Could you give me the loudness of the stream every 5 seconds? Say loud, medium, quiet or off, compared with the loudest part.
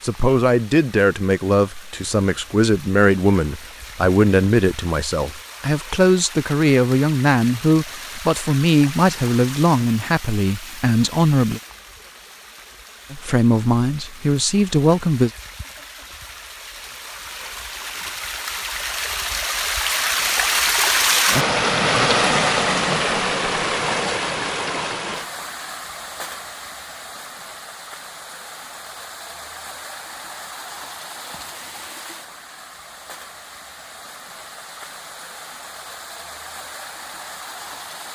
quiet, quiet, quiet, medium, loud, quiet, quiet, quiet.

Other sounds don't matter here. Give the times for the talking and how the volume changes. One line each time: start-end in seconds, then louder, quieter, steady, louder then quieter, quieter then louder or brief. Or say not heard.
0.0-11.6 steady
13.1-15.3 brief.